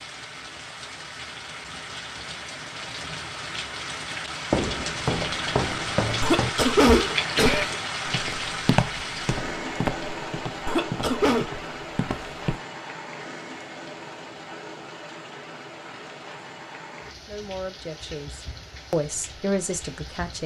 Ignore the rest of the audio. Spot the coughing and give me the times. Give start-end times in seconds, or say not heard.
6.2-7.8, 10.7-11.5.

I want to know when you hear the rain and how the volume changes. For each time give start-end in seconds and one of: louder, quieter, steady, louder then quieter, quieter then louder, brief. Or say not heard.
0.0-20.4 louder then quieter.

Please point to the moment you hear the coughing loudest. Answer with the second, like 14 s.
7 s.